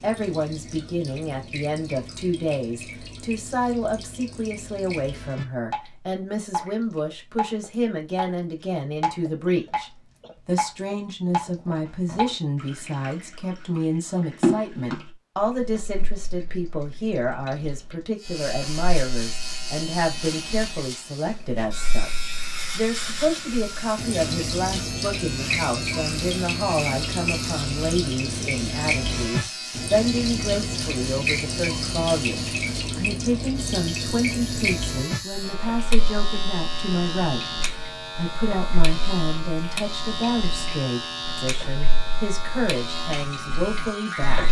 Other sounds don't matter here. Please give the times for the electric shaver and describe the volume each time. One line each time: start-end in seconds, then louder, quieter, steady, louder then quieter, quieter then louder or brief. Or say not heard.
18.1-44.4 steady.